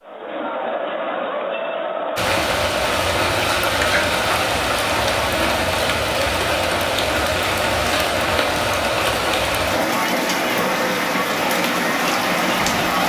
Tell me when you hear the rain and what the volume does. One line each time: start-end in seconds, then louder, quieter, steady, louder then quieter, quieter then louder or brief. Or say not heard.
2.1-13.0 steady.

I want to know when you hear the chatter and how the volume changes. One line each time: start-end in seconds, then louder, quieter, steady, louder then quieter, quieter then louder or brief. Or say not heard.
0.0-13.0 steady.